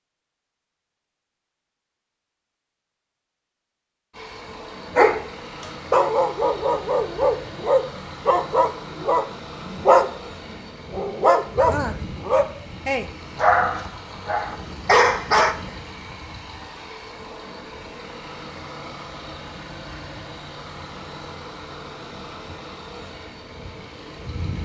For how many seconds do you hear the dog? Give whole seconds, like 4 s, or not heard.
10 s.